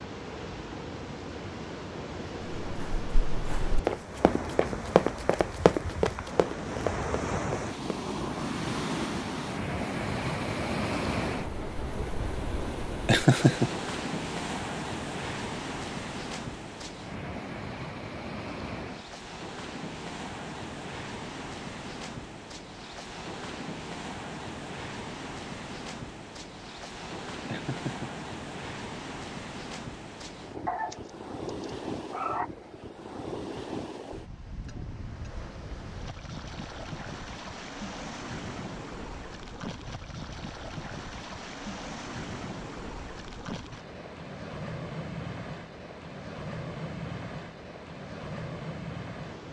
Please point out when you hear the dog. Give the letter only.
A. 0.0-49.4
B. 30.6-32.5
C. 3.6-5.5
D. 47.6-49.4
B.